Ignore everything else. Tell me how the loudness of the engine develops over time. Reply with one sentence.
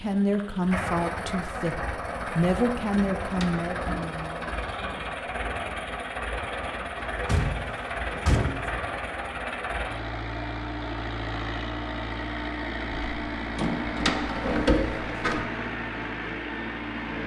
The loudness of the engine stays about the same.